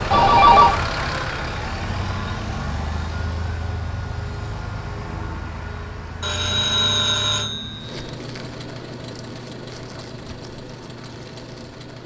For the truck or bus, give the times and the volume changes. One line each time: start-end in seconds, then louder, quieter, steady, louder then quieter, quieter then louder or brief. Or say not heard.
0.0-12.0 quieter.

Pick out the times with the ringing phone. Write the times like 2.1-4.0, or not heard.
0.1-0.8, 6.2-8.0.